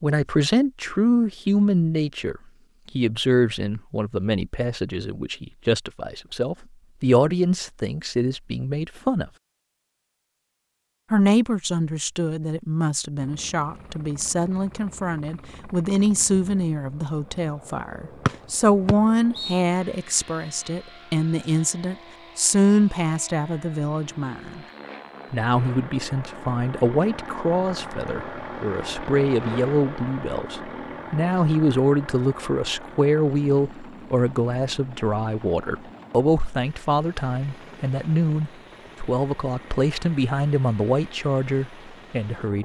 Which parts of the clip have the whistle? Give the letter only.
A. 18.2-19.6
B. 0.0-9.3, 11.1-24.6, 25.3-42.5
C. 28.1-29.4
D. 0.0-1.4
A.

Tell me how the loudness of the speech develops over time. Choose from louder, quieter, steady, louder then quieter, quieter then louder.
steady.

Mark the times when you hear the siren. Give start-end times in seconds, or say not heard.
not heard.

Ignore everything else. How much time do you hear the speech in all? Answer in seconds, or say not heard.
40 s.